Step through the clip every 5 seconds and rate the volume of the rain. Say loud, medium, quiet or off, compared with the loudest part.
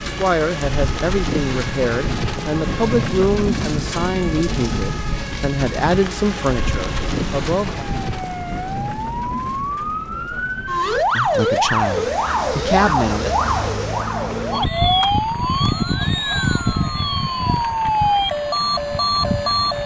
loud, loud, quiet, quiet.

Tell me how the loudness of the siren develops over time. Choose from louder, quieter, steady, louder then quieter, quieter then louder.
louder.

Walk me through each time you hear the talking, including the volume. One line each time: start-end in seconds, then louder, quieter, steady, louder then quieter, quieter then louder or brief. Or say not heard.
0.0-7.8 steady
11.2-13.3 brief.